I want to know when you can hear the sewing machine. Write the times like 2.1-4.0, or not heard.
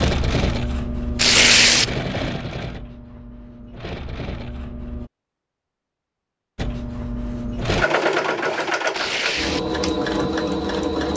0.0-5.1, 6.5-11.1.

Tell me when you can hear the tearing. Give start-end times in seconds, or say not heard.
1.1-1.9, 8.9-9.7.